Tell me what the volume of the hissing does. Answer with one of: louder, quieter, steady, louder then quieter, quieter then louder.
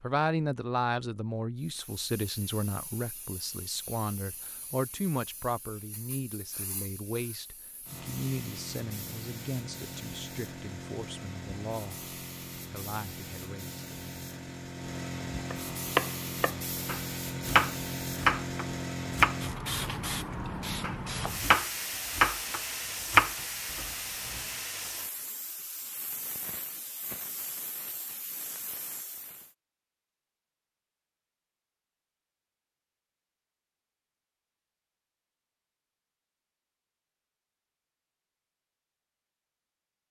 louder then quieter.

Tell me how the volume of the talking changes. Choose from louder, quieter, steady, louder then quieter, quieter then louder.
quieter.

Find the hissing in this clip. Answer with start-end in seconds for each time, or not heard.
1.6-29.6.